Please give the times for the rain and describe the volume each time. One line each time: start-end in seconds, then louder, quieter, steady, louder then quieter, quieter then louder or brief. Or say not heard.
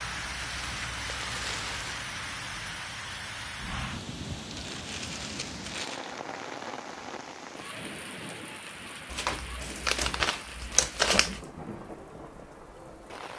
0.0-13.3 quieter.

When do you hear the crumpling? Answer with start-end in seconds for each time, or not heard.
0.6-2.0, 4.5-6.2, 9.1-11.4.